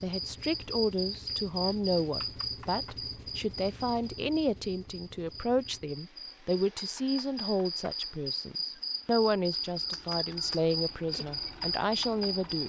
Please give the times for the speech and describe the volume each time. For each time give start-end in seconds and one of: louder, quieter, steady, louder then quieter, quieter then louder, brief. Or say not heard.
0.0-12.6 steady.